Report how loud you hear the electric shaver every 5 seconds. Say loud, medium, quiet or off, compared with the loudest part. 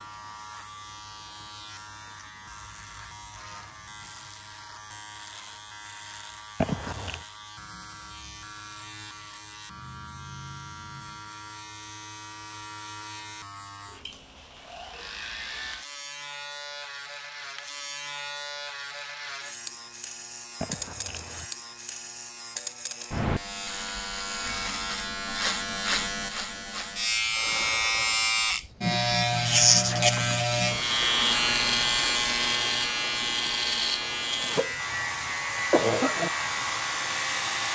quiet, quiet, quiet, quiet, medium, loud, loud, medium.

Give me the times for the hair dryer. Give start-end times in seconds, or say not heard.
34.8-37.7.